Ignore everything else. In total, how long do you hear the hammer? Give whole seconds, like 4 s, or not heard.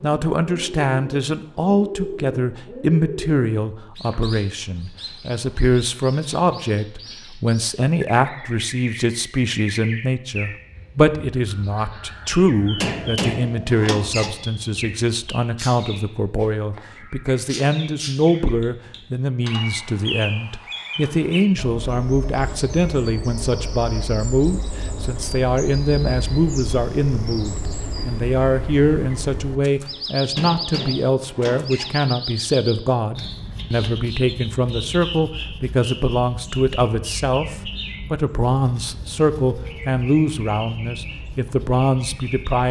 3 s.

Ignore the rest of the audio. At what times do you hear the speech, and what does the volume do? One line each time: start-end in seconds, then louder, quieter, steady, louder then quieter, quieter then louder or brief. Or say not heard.
0.0-42.6 steady.